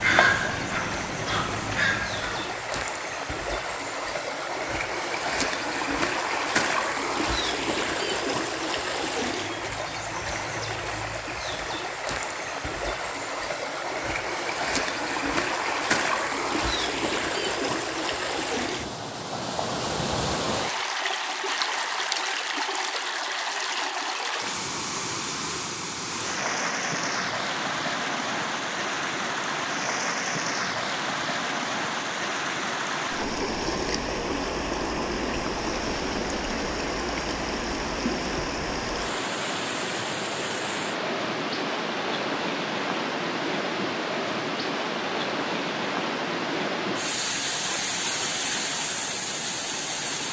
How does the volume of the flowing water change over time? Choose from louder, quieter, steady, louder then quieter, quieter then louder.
steady.